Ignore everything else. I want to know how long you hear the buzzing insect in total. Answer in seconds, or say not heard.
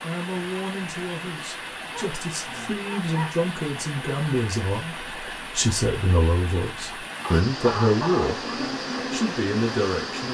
2 s.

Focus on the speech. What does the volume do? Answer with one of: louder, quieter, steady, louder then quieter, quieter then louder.
louder.